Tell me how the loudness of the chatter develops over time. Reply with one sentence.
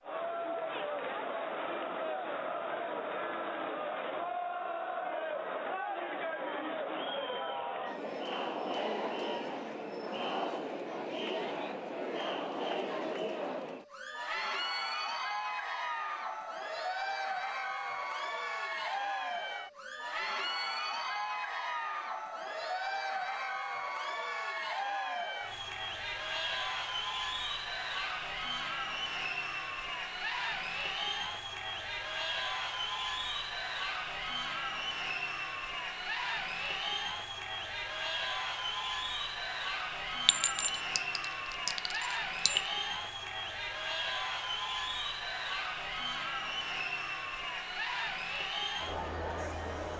The loudness of the chatter stays about the same.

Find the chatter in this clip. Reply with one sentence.
The chatter can be heard from 0.0 to 49.9 s.